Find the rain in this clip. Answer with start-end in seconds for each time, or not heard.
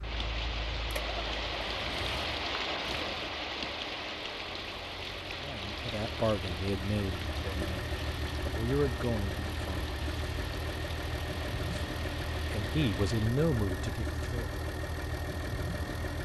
0.0-13.3.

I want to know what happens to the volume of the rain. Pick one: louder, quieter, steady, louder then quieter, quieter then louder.
quieter.